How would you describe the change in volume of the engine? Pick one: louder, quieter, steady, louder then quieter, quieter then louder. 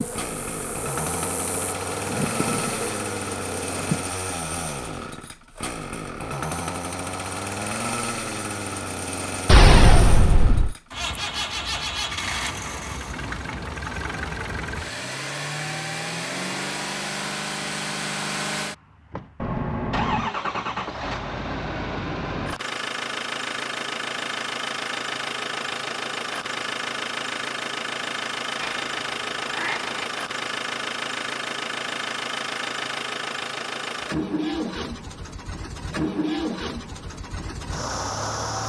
steady.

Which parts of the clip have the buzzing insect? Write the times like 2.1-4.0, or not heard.
0.0-4.0.